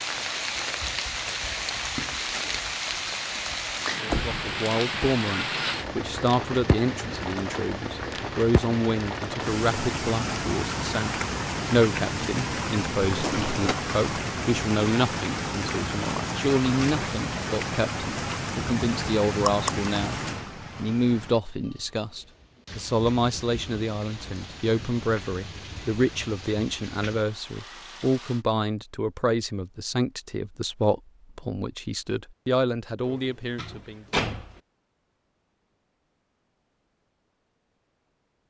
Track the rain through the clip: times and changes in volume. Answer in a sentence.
The rain can be heard from 0.0 to 28.4 s, getting quieter.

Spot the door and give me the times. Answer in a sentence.
You can hear the door from 4.0 to 5.2 s, from 13.1 to 13.8 s and from 33.0 to 34.6 s.